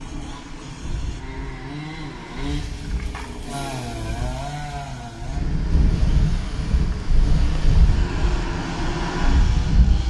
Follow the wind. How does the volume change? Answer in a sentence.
The loudness of the wind goes up.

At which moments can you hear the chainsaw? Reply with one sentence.
The chainsaw can be heard from 0.0 to 10.0 s.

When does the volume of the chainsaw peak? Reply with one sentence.
The loudest moment of the chainsaw is at 4 seconds.